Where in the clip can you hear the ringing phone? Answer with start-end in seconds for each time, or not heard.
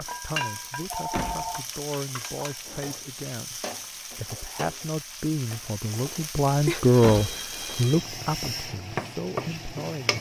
0.9-1.6, 6.7-8.1.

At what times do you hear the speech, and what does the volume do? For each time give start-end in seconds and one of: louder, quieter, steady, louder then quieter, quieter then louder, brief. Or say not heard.
0.0-10.1 louder then quieter.